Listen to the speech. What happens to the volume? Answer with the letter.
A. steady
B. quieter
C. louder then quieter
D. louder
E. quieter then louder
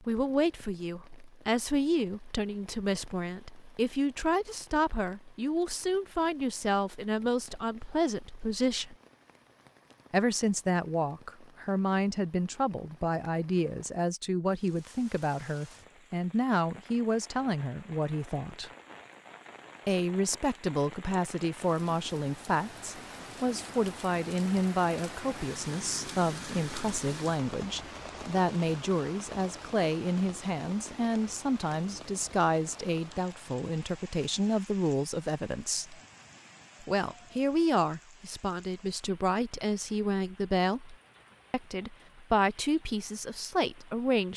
A.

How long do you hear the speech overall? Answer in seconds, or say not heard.
41 s.